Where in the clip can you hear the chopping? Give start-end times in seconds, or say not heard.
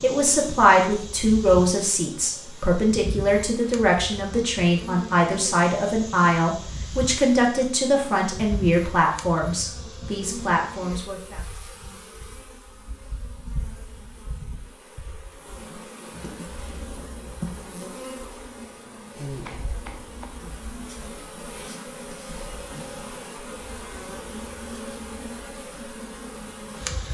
19.4-20.9.